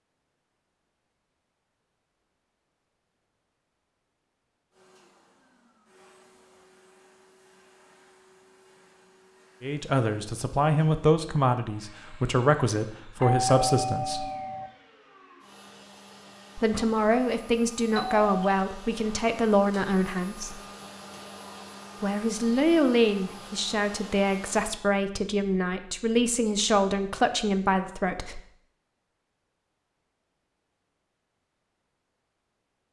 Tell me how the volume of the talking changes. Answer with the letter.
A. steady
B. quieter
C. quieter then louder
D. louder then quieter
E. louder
A.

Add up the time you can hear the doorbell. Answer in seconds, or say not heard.
2 s.